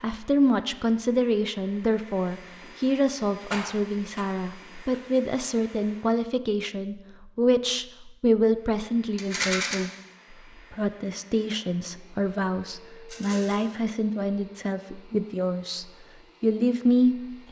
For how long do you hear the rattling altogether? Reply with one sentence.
You can hear the rattling for 2 seconds altogether.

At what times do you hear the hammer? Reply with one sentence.
You can't hear the hammer here.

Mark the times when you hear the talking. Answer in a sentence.
The talking can be heard from 0.0 to 9.9 s and from 10.7 to 17.4 s.